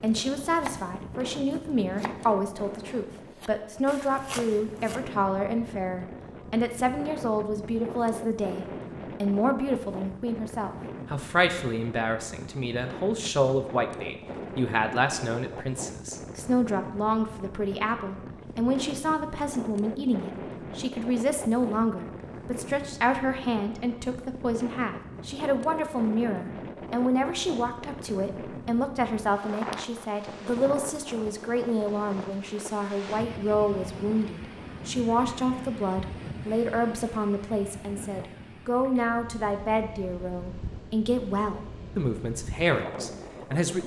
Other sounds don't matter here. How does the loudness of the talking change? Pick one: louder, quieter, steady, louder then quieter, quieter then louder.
steady.